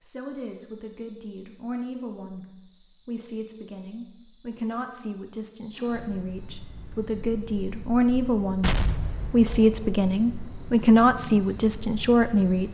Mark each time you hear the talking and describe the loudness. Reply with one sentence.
You can hear the talking from 0.0 to 12.6 s, getting louder.